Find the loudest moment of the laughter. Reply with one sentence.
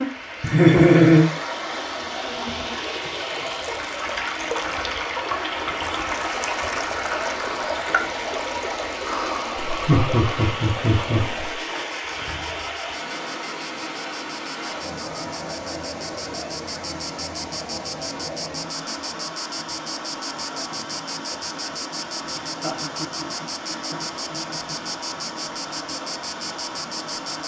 The loudest moment of the laughter is at 1 second.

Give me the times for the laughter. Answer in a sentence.
You can hear the laughter from 0.4 to 1.2 s, from 9.6 to 11.5 s and from 22.4 to 24.9 s.